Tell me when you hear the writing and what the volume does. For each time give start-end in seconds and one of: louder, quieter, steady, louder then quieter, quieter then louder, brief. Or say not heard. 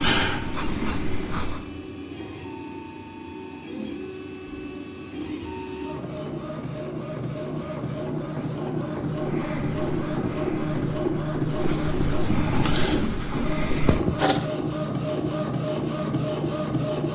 0.0-1.7 brief
9.1-14.4 louder.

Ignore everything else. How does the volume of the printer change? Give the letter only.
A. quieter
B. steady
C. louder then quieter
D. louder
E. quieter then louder
D.